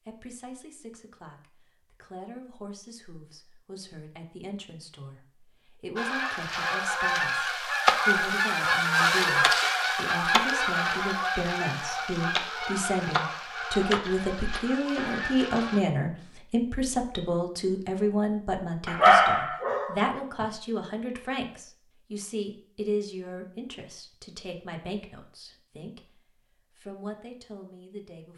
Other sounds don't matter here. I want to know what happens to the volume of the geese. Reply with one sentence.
The loudness of the geese goes down.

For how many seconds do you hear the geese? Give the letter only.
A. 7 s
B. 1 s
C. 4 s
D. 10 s
D.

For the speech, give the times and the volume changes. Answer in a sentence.
The speech can be heard from 0.1 to 28.3 s, getting louder then quieter.